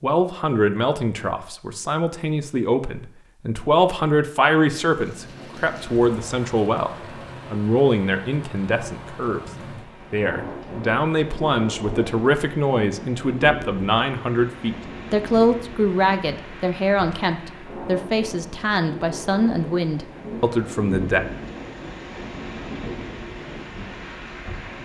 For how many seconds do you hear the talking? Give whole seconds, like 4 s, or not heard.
20 s.